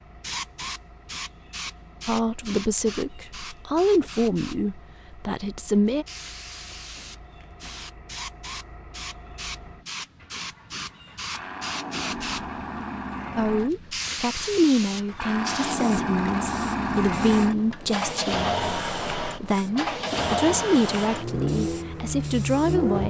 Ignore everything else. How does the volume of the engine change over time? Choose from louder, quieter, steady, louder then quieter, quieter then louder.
louder.